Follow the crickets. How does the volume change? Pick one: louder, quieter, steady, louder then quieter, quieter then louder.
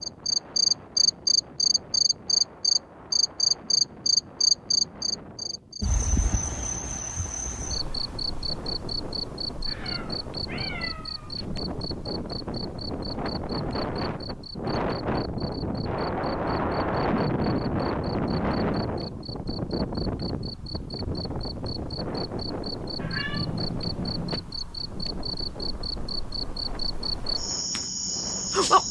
quieter then louder.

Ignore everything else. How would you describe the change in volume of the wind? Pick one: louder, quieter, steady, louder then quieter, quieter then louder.
louder then quieter.